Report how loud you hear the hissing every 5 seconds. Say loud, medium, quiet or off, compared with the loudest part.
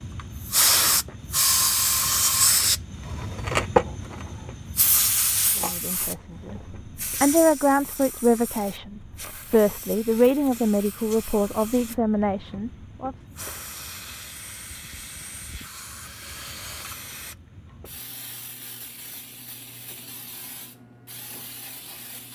loud, medium, quiet, quiet, quiet.